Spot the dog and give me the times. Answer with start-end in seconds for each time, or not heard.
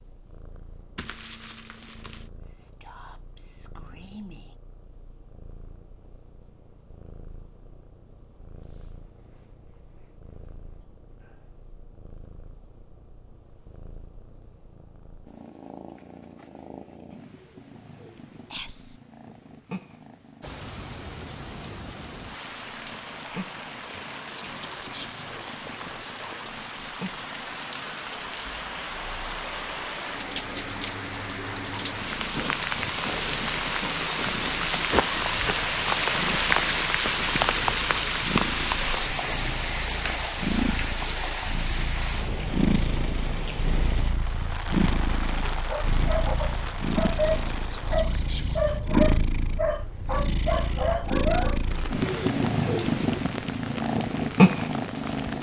45.6-51.6.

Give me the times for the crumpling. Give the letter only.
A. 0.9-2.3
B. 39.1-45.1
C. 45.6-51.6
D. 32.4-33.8
A.